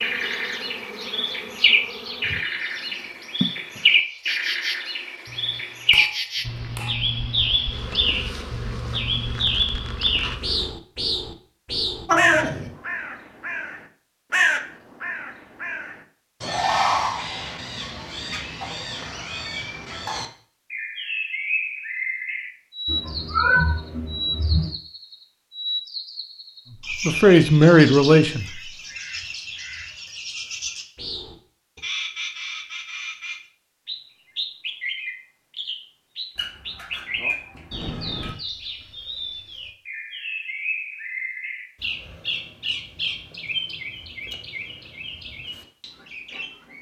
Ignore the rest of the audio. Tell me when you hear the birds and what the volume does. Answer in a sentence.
The birds can be heard from 0.0 to 46.7 s, getting quieter.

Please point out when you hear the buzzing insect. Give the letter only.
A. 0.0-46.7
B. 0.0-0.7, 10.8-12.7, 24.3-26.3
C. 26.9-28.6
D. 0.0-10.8
D.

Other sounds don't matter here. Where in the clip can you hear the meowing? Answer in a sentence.
The meowing can be heard from 12.1 to 12.7 s, from 22.9 to 24.7 s and from 36.4 to 38.4 s.